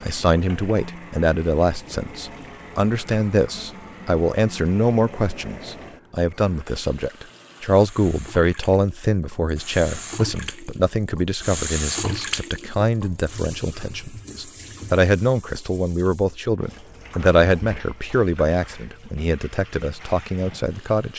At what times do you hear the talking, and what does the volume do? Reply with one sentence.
The talking can be heard from 0.0 to 21.1 s, at a steady volume.